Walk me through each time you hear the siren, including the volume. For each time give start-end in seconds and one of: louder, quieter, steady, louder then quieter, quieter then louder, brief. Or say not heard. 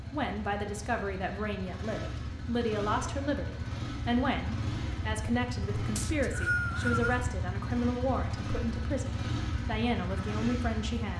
not heard.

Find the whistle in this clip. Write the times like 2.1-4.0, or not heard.
6.0-7.2.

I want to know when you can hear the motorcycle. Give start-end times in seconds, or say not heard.
0.0-11.1.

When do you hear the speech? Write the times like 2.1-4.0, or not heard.
0.1-11.1.